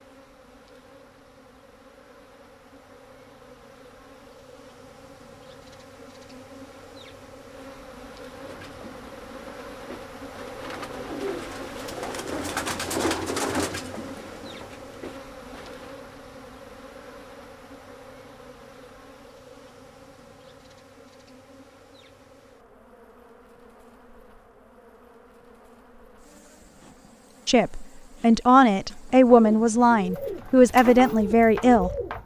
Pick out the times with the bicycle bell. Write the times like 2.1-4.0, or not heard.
not heard.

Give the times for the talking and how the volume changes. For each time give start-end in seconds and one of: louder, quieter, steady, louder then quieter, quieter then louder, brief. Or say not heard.
27.4-31.9 steady.